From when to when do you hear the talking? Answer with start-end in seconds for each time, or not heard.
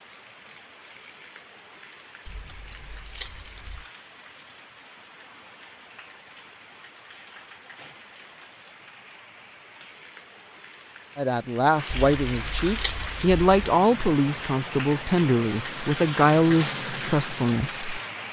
11.2-18.2.